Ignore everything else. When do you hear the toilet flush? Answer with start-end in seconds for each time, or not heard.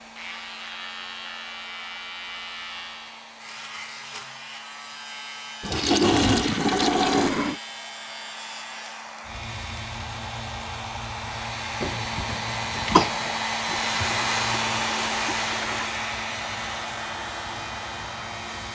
5.6-7.6, 13.7-16.0.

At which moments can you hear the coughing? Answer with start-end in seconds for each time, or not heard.
11.8-13.4.